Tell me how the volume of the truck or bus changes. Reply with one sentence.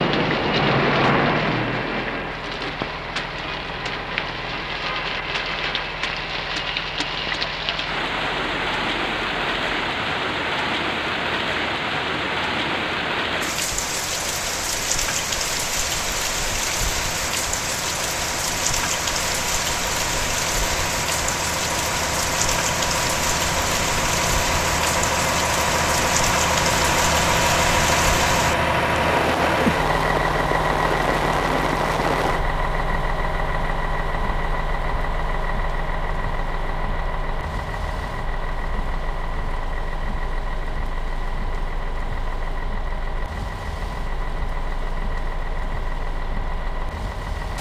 The loudness of the truck or bus goes up, then down.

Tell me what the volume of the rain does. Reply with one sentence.
The loudness of the rain goes down.